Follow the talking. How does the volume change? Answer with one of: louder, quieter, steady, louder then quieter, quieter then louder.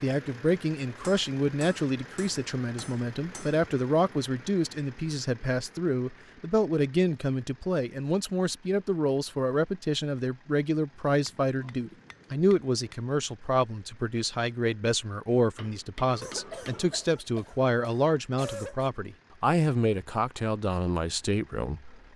steady.